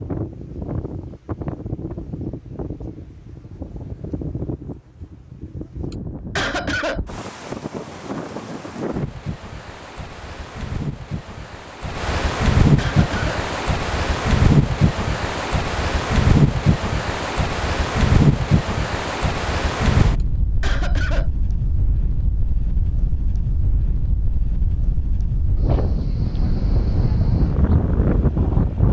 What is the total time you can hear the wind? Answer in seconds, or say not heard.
29 s.